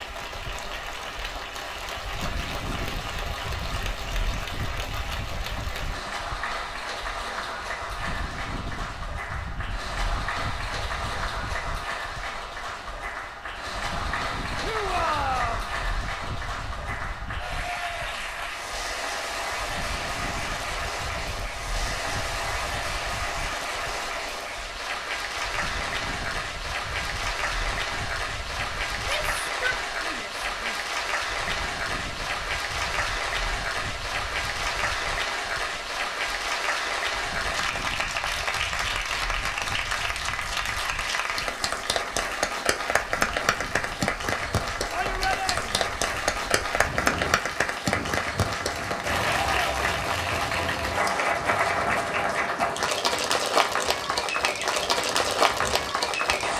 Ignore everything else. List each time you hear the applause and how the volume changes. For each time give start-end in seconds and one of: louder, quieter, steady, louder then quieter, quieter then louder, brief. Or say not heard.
0.0-56.5 louder.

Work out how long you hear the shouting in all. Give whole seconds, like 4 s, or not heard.
4 s.